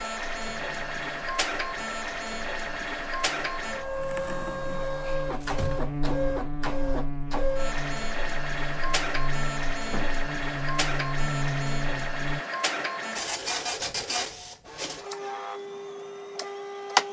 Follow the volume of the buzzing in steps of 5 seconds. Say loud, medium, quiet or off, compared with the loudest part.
quiet, loud, loud, off.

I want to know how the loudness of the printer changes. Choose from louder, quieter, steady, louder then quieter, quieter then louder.
steady.